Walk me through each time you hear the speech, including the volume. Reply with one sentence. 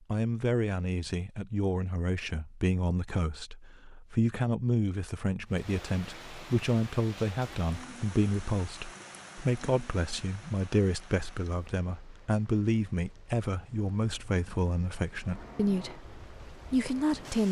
You can hear the speech from 0.1 to 17.4 s, at a steady volume.